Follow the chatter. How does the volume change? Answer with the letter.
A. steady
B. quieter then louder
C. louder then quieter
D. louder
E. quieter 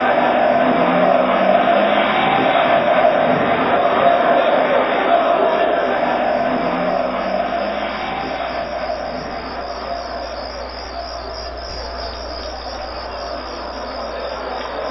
E.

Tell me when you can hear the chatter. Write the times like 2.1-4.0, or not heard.
0.0-14.8.